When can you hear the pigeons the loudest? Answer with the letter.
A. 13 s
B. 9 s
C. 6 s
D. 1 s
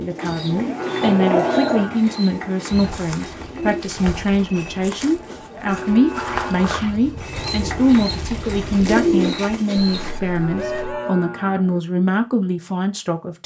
B.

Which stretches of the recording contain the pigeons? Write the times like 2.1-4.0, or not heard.
0.0-3.9, 7.2-11.2.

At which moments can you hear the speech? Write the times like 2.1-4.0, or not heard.
0.0-13.4.